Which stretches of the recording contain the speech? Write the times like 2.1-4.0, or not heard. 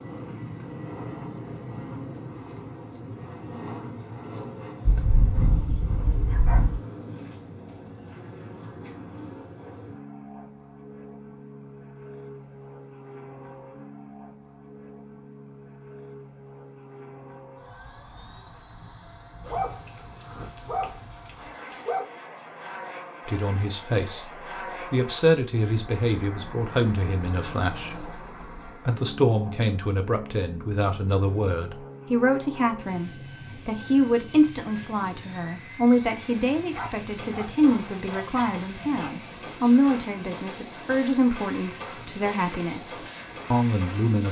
23.2-24.3, 24.9-44.2.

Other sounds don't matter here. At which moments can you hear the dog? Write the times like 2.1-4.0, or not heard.
4.8-6.8, 19.4-22.1, 36.7-39.1.